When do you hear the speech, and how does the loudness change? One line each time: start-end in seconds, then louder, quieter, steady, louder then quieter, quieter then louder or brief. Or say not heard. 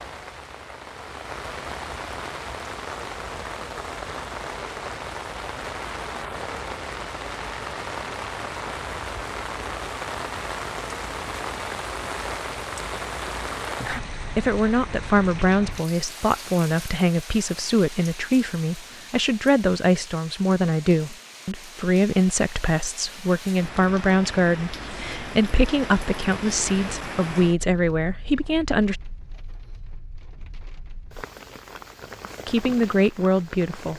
14.3-28.9 steady
32.5-33.9 brief.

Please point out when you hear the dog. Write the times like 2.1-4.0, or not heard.
not heard.